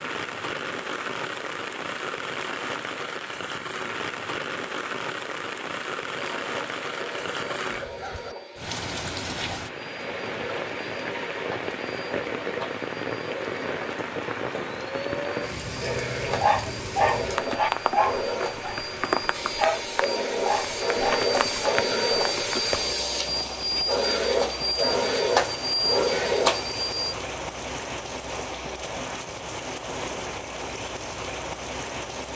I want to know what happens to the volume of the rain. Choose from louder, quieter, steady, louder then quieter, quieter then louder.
steady.